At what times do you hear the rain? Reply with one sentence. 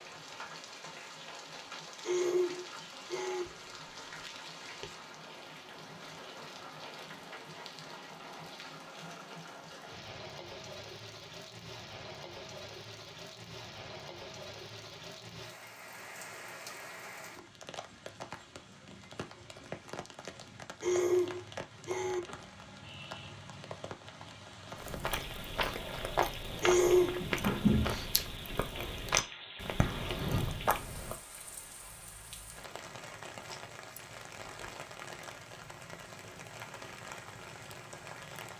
You can hear the rain from 0.0 to 38.5 s.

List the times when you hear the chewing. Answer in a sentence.
The chewing can be heard from 24.8 to 31.1 s.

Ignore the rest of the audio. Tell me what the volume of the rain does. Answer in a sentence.
The volume of the rain stays about the same.